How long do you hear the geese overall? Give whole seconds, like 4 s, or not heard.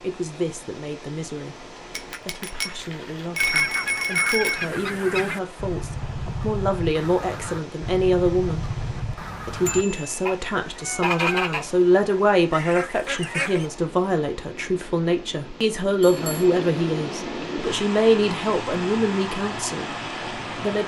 10 s.